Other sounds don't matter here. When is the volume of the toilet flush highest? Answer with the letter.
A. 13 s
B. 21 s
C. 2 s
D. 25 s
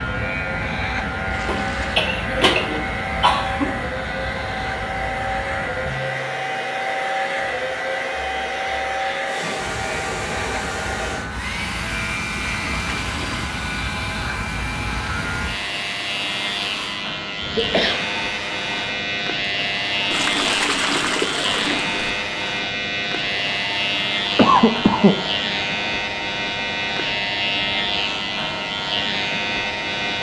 B.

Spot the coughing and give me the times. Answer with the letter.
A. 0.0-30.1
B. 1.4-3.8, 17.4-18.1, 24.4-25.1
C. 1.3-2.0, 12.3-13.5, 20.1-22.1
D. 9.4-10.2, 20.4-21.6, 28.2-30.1
B.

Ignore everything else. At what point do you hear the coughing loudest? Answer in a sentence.
The loudest moment of the coughing is at 25 seconds.